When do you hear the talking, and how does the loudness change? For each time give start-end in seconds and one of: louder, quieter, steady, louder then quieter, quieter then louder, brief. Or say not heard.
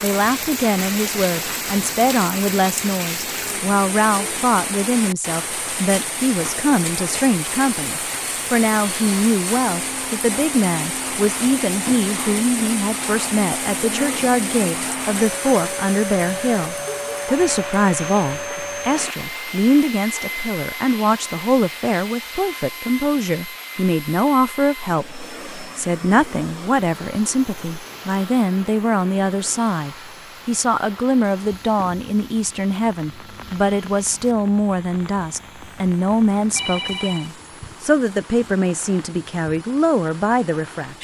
0.0-40.9 steady.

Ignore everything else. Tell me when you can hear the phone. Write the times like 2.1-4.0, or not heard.
36.5-37.3.